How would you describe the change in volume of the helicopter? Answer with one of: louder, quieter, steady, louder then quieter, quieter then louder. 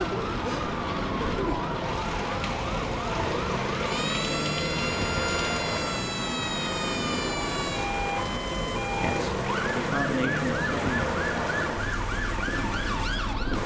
steady.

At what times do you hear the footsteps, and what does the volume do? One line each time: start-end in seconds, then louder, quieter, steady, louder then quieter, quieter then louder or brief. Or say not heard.
not heard.